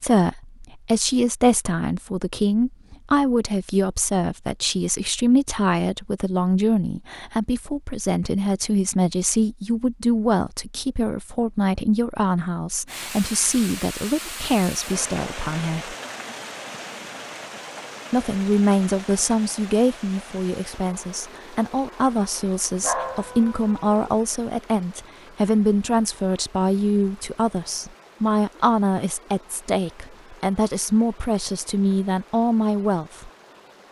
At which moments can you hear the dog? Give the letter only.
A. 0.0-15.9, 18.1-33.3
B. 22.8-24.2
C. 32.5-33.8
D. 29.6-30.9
B.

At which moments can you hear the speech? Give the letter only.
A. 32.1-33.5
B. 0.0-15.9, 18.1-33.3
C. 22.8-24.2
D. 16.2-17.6
B.